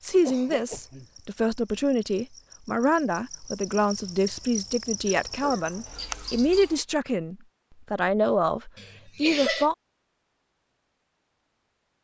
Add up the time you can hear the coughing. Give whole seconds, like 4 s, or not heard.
3 s.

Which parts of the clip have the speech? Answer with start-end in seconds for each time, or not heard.
0.0-9.8.